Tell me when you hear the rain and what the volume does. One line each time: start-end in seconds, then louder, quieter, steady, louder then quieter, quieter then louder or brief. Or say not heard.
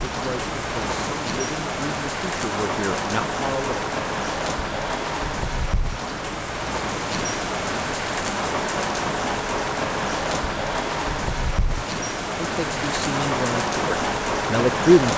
0.0-15.1 steady.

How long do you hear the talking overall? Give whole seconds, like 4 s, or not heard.
7 s.